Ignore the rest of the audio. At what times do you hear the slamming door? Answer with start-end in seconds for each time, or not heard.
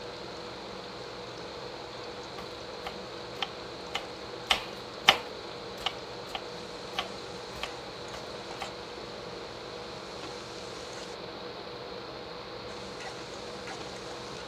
not heard.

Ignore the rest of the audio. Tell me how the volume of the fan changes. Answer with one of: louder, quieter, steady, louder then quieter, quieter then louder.
steady.